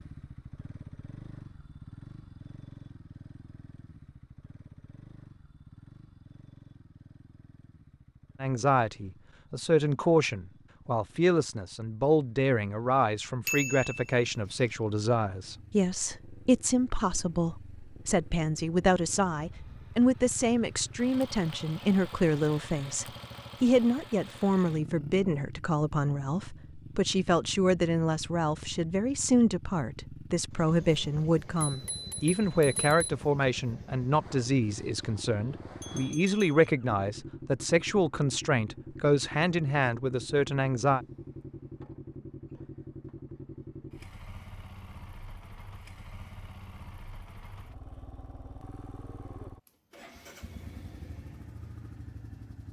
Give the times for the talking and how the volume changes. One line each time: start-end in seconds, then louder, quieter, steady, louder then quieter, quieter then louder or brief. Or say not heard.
8.4-41.0 steady.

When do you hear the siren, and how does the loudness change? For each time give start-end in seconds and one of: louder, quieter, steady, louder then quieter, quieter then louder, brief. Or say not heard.
not heard.